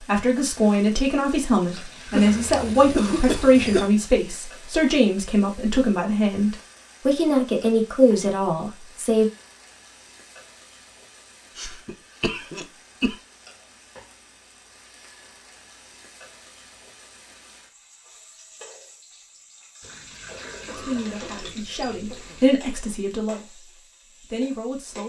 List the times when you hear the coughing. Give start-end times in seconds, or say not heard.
2.1-3.9, 11.6-13.2, 20.6-22.5.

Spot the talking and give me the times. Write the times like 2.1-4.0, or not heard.
0.0-9.3, 20.8-25.0.